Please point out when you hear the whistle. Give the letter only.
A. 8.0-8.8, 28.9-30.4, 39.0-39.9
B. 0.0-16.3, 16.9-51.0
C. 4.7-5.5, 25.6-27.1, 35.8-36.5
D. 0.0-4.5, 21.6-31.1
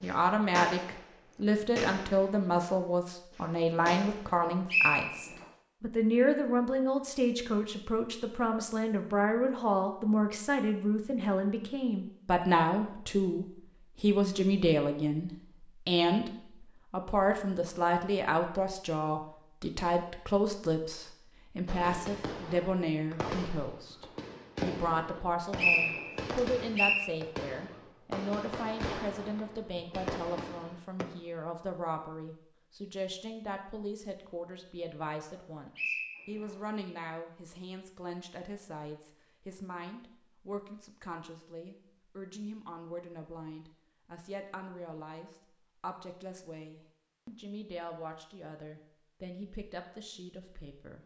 C.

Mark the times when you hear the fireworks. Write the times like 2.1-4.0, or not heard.
0.0-4.5, 21.6-31.1.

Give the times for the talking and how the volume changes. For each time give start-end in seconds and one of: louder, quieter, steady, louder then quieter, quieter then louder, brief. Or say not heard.
0.0-16.3 steady
16.9-51.0 quieter.